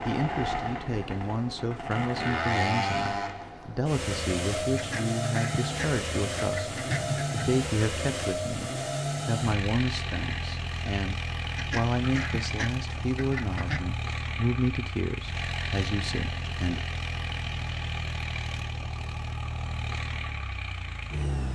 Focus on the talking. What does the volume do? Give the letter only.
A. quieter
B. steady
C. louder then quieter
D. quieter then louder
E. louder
B.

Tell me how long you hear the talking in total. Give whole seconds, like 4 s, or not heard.
17 s.